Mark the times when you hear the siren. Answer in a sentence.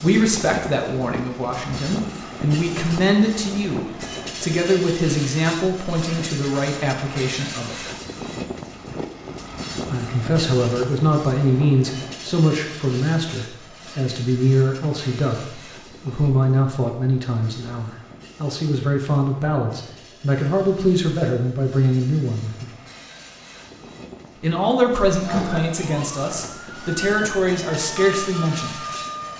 You can hear the siren from 25.2 to 29.3 s.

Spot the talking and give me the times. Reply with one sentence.
You can hear the talking from 0.0 to 7.8 s, from 9.9 to 22.7 s and from 24.4 to 28.8 s.